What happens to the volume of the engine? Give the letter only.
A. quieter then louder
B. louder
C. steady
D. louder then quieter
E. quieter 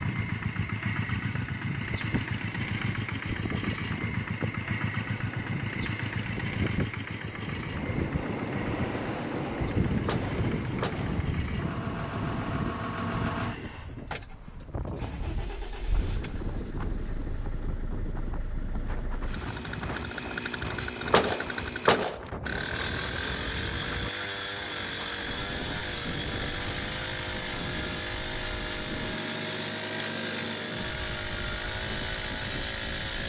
A.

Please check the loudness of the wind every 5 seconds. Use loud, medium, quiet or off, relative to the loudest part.
medium, loud, loud, medium, medium, medium, medium.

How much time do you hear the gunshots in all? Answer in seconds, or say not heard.
2 s.